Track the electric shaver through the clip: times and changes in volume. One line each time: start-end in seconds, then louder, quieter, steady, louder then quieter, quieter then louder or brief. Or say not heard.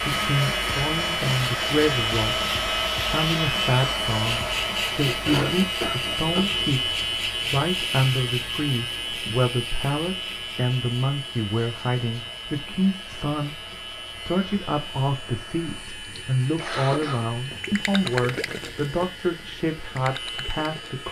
0.0-21.0 quieter.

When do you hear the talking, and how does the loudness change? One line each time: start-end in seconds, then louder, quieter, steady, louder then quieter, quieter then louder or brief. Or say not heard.
0.1-21.0 steady.